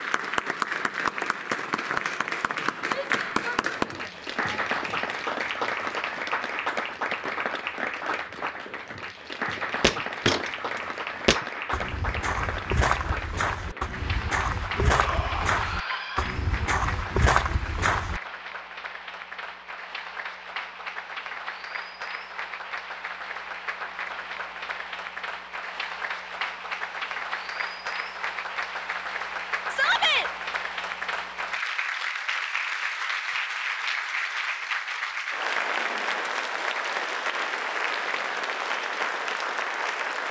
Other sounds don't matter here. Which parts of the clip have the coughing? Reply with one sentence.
You can't hear the coughing here.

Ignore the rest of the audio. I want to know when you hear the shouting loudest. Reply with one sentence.
The loudest moment of the shouting is at 30 seconds.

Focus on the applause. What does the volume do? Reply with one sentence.
The loudness of the applause goes down, then up.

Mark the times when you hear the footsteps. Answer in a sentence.
The footsteps can be heard from 9.7 to 18.2 s.